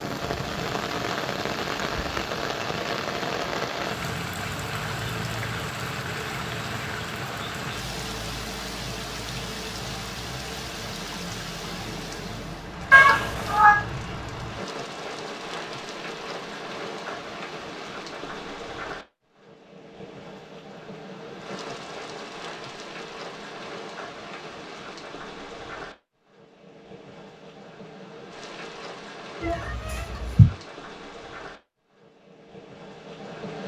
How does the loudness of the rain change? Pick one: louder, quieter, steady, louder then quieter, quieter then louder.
quieter.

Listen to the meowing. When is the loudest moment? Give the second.
13 s.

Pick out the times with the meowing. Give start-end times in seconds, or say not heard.
12.9-13.8, 29.4-30.4.